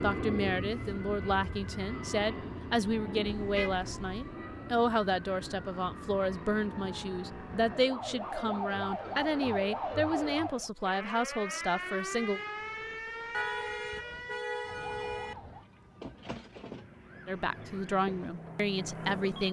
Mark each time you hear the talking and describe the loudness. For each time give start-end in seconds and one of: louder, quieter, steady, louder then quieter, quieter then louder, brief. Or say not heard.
0.0-12.4 steady
17.2-19.4 brief.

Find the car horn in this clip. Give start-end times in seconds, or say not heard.
3.2-4.3, 13.3-15.3.